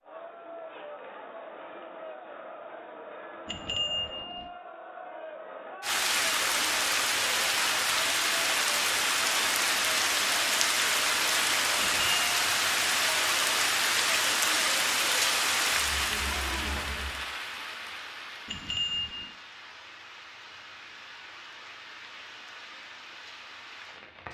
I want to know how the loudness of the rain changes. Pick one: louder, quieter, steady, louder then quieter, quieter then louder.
quieter.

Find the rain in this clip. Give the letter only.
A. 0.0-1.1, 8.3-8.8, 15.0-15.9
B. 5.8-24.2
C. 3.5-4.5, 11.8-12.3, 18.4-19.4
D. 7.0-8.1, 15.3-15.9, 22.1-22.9
B.